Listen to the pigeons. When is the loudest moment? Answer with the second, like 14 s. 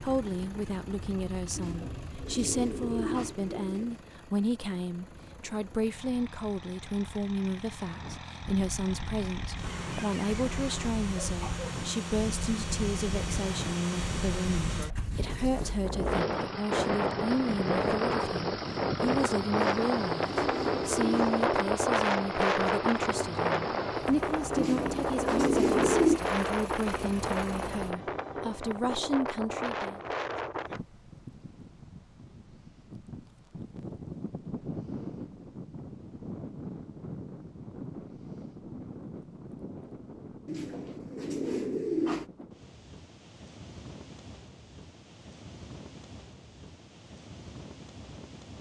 26 s.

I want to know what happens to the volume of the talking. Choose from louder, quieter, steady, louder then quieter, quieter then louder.
steady.